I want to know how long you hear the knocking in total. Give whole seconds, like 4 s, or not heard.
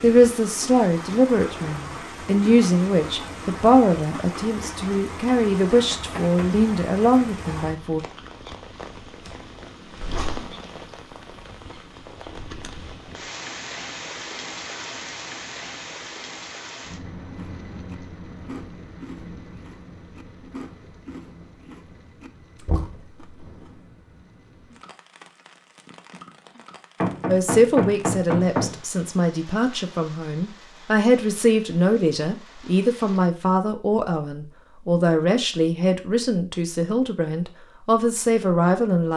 3 s.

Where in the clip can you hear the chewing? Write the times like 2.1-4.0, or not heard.
17.3-23.9.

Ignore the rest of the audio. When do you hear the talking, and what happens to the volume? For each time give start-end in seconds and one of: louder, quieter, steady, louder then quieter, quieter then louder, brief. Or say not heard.
0.0-8.0 steady
27.2-39.1 steady.